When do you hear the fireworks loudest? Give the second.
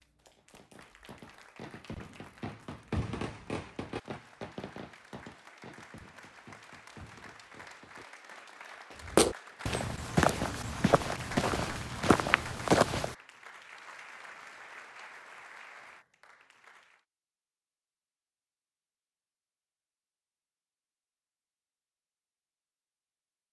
3 s.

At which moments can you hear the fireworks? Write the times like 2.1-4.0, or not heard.
0.3-9.1.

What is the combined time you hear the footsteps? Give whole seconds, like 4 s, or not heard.
4 s.